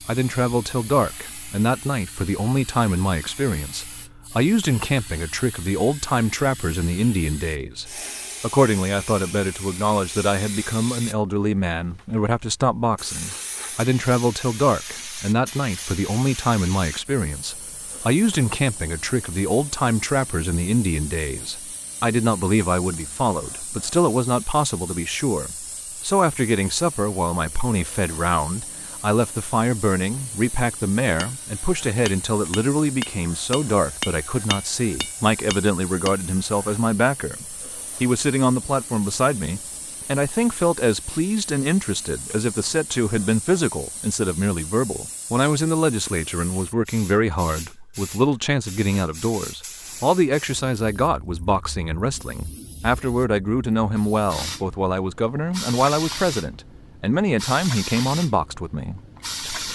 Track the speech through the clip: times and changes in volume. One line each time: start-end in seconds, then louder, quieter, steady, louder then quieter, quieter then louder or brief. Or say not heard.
0.1-59.7 steady.